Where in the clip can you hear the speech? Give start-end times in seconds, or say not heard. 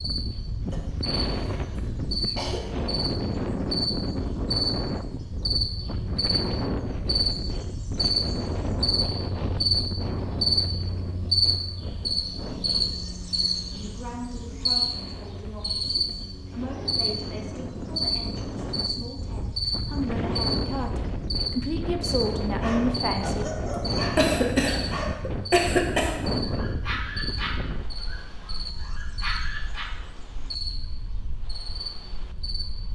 13.7-23.4.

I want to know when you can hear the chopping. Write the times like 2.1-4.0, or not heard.
not heard.